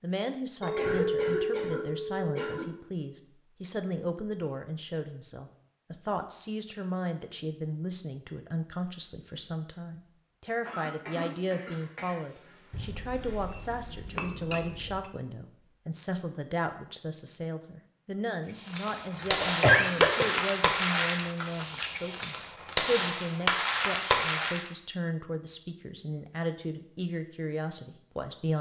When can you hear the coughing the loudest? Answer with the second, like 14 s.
20 s.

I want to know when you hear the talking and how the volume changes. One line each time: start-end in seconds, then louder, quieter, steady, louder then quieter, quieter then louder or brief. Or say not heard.
0.0-28.5 steady.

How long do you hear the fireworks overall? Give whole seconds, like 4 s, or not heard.
6 s.